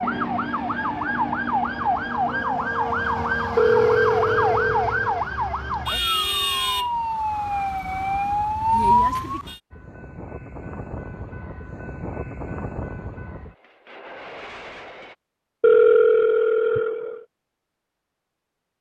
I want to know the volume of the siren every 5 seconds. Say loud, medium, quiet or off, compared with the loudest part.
loud, loud, off, off.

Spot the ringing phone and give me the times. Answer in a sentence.
You can hear the ringing phone from 3.5 to 5.2 s and from 15.6 to 17.2 s.